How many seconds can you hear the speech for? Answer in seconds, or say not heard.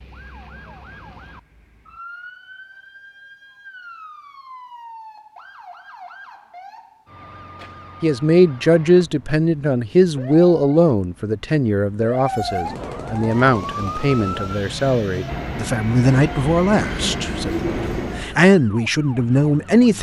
12 s.